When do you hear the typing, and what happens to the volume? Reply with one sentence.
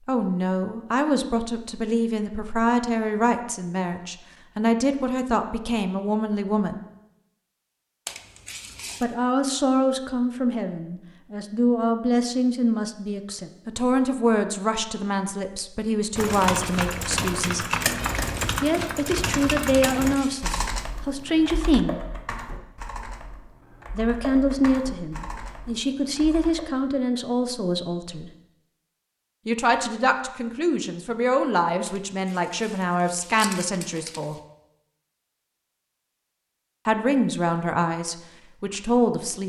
The typing can be heard from 16.1 to 26.7 s, getting quieter.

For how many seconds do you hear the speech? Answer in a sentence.
The speech can be heard for 31 seconds in total.